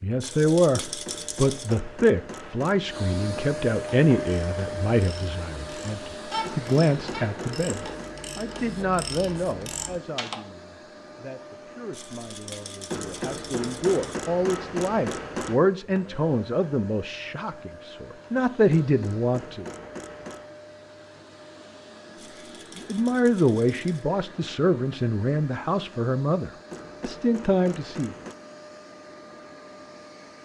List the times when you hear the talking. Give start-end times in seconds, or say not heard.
0.0-19.6, 22.8-28.1.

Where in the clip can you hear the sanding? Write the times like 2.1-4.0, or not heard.
not heard.